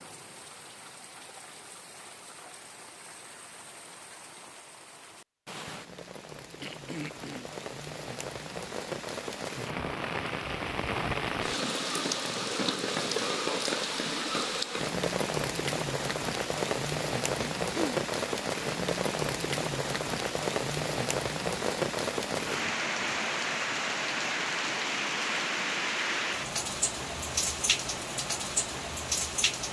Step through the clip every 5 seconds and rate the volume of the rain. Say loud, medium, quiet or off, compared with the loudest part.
quiet, medium, loud, loud, loud, loud.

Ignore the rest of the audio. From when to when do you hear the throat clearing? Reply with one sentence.
The throat clearing can be heard from 6.6 to 7.5 s, from 17.4 to 18.0 s and from 22.4 to 23.2 s.